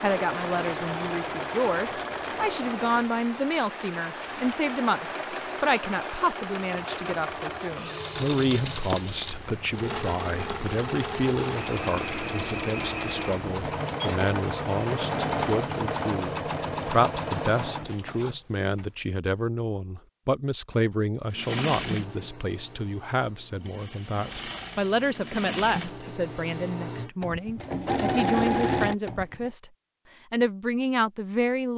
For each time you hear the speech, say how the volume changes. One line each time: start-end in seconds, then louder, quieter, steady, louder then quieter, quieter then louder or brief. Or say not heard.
0.0-29.7 steady
30.3-31.7 brief.